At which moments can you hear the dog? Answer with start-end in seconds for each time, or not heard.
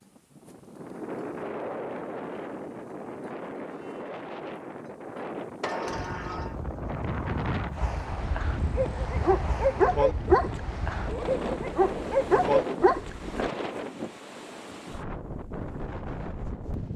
8.1-13.5.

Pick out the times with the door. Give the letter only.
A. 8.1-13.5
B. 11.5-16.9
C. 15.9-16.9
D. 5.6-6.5
D.